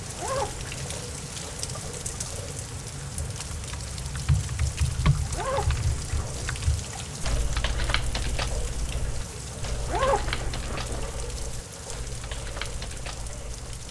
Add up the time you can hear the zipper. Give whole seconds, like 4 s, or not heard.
3 s.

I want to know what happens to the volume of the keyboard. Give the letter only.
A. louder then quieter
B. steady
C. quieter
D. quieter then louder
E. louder
C.